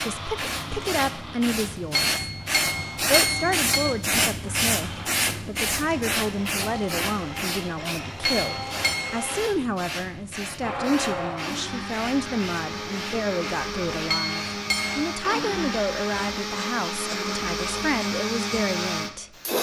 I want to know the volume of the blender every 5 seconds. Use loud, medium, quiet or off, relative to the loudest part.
medium, medium, loud, loud.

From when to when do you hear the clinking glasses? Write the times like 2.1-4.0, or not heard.
1.9-4.0, 8.2-9.2, 14.1-15.1.